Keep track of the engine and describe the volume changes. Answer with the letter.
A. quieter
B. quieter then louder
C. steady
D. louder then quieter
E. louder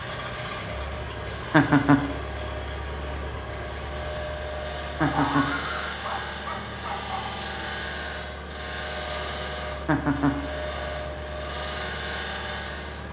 C.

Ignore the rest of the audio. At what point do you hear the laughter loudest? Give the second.
2 s.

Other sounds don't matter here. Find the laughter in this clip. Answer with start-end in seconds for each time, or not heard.
1.5-2.0, 5.0-5.5, 9.8-10.3.